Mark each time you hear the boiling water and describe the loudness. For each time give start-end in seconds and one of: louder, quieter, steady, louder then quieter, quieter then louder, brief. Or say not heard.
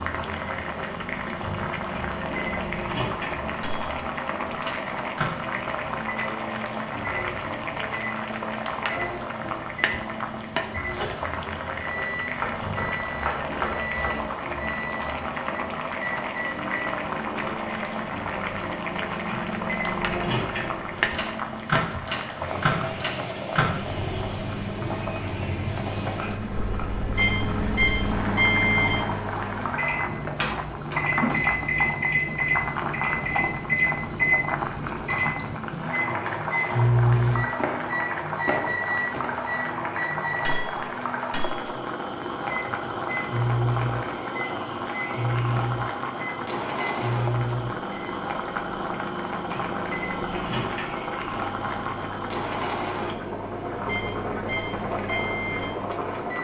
0.0-56.3 steady.